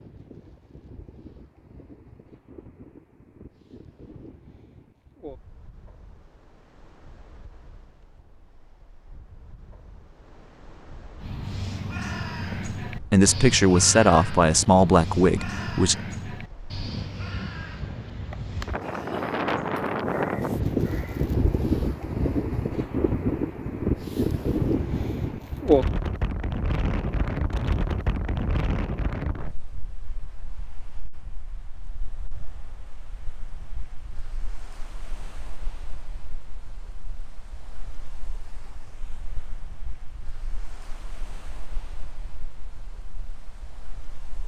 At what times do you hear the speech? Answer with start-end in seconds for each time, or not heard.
12.5-16.0.